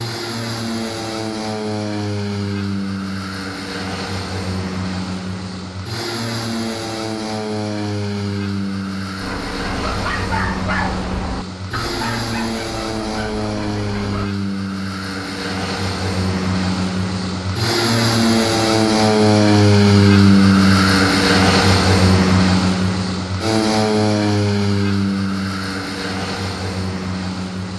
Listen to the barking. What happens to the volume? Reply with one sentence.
The volume of the barking goes down.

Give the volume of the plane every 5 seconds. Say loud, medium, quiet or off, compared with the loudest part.
medium, medium, medium, loud, loud, medium.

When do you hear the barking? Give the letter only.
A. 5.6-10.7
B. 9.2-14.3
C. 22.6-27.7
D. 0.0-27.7
B.